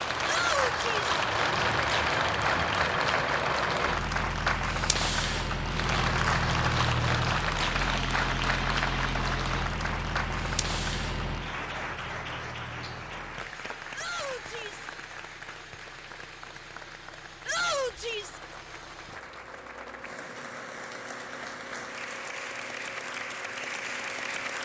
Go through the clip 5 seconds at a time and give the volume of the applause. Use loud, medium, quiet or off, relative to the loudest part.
loud, loud, medium, quiet, medium.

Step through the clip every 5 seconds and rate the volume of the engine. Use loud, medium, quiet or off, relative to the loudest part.
loud, loud, medium, quiet, quiet.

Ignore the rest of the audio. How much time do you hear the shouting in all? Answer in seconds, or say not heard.
3 s.